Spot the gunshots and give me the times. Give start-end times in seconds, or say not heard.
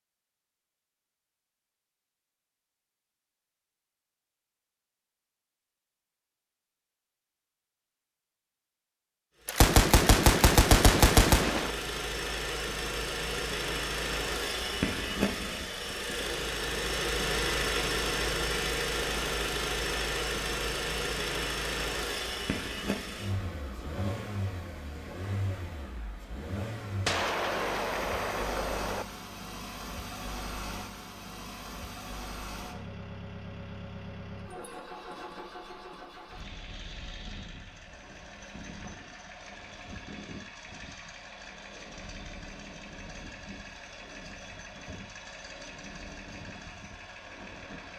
9.4-11.8, 27.1-29.1.